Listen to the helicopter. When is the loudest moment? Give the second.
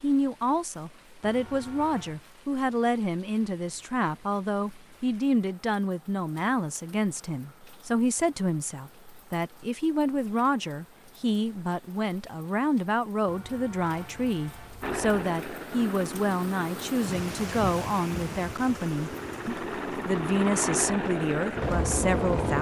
22 s.